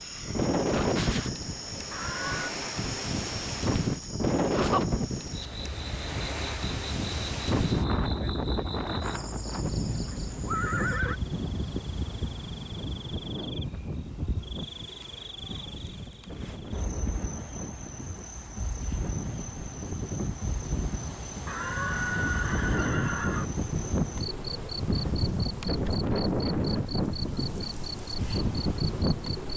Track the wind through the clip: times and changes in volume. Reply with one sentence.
You can hear the wind from 0.0 to 29.5 s, getting quieter then louder.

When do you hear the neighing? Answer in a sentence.
The neighing can be heard from 1.9 to 2.5 s, from 10.1 to 11.2 s and from 21.4 to 23.5 s.